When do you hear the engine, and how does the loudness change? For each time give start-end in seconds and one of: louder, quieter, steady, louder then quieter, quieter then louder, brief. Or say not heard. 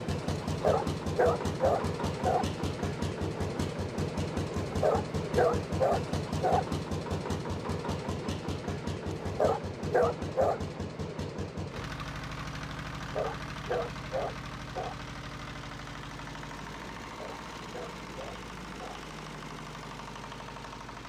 0.0-21.0 quieter.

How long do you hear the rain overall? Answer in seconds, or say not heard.
not heard.